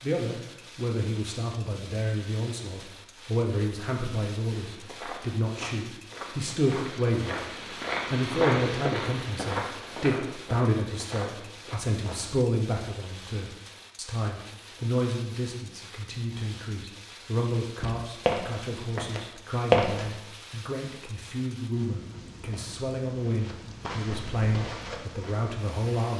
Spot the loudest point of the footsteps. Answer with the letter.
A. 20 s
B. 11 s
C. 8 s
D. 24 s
A.